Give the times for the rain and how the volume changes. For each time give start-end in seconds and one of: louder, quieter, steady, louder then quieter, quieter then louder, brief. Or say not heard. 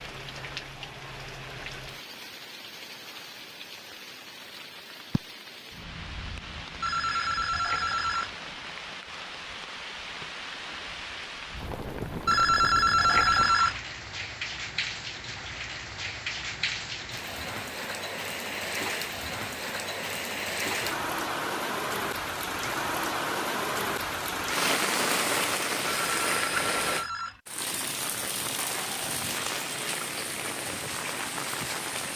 0.0-32.1 louder.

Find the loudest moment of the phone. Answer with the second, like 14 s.
13 s.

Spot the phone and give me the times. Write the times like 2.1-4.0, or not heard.
6.8-8.3, 12.2-13.8, 25.9-27.4.